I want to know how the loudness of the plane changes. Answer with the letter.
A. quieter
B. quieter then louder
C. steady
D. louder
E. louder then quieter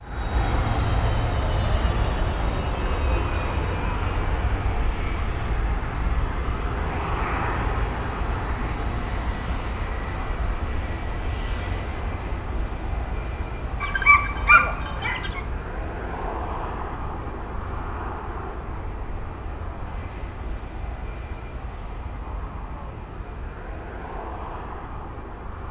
A.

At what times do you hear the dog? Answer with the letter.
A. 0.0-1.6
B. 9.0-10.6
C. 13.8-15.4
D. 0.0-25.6
C.